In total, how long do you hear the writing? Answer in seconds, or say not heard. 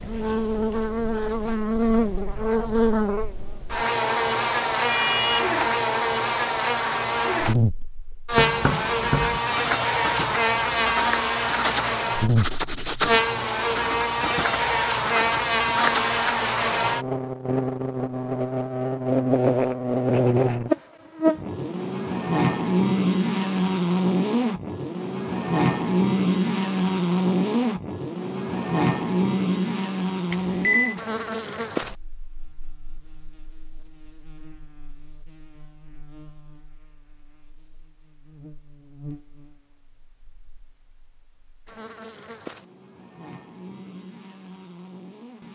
8 s.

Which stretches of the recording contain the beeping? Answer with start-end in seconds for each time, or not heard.
4.8-5.5, 30.3-30.9.